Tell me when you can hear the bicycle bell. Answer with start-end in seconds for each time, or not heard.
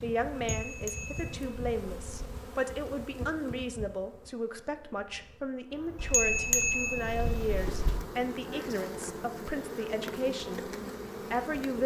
0.3-2.3, 6.0-8.0.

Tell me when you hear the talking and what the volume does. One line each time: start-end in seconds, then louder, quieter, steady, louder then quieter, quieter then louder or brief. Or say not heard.
0.0-10.6 steady
11.3-11.8 brief.